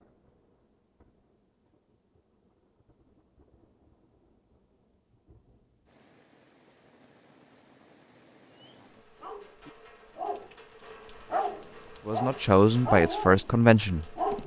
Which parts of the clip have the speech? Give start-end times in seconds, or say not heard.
12.1-14.4.